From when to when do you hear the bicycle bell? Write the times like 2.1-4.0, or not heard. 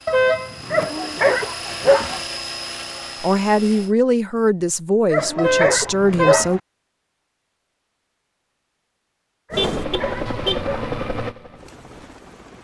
not heard.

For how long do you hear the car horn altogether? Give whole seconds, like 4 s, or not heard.
3 s.